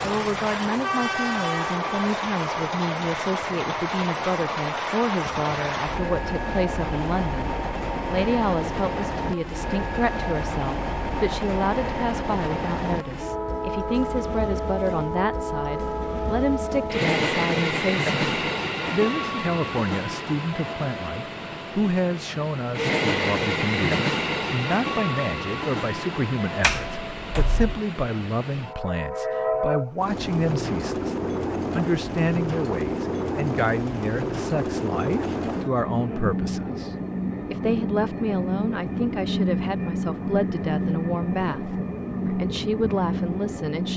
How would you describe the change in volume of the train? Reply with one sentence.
The loudness of the train stays about the same.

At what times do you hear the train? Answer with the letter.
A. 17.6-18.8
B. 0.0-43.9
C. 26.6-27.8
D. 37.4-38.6
B.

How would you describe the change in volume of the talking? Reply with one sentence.
The loudness of the talking stays about the same.